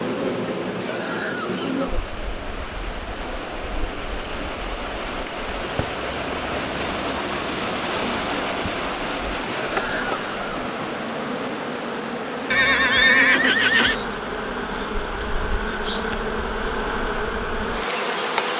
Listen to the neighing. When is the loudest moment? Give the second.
13 s.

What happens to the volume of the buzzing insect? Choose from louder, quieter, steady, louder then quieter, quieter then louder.
quieter then louder.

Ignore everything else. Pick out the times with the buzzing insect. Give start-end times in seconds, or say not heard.
0.0-18.5.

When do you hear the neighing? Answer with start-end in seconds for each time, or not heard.
0.7-1.8, 9.4-10.5, 12.5-14.0.